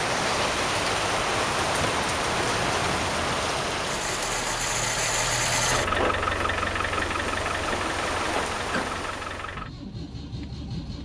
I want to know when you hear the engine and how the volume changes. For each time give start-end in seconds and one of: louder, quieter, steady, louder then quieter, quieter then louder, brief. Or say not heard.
0.1-10.9 louder then quieter.